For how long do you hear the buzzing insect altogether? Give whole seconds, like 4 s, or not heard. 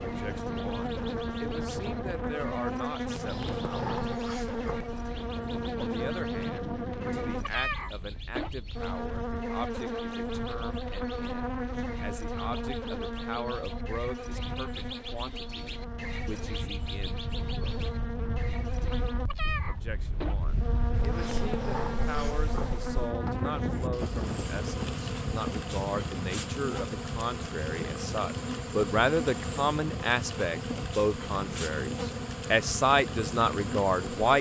34 s.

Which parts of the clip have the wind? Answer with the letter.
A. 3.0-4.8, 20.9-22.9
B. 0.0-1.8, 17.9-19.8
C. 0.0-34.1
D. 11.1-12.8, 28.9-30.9
C.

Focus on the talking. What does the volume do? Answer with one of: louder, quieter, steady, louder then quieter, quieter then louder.
louder.